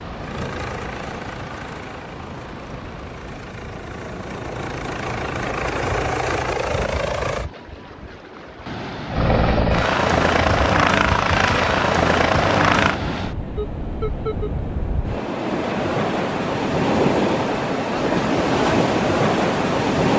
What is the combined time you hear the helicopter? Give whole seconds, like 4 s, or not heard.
11 s.